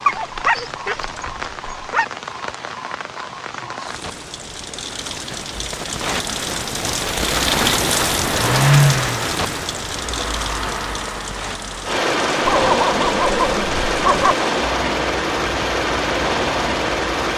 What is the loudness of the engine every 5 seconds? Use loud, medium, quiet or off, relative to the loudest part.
off, loud, loud, loud.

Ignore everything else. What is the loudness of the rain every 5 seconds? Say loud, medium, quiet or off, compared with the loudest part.
medium, loud, medium, medium.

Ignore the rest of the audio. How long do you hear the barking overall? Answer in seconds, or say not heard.
4 s.